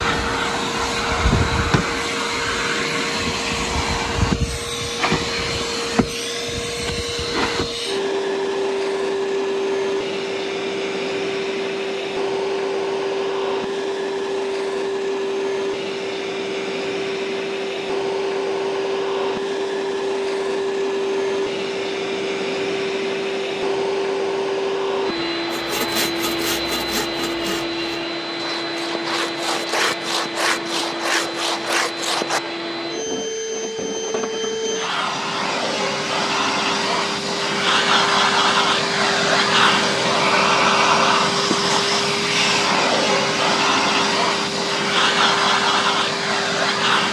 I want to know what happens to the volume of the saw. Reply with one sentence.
The volume of the saw goes down, then up.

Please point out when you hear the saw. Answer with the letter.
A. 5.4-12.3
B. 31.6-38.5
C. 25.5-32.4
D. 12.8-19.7
C.